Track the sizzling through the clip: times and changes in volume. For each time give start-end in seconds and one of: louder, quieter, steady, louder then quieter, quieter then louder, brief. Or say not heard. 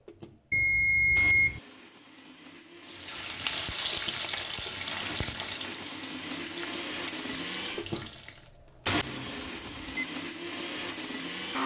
2.9-8.6 quieter.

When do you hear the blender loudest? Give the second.
9 s.